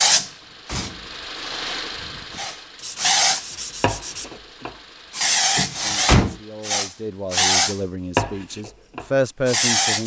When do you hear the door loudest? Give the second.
6 s.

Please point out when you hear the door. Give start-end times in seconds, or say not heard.
0.1-1.1, 5.5-6.3.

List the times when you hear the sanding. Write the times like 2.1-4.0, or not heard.
2.8-4.4.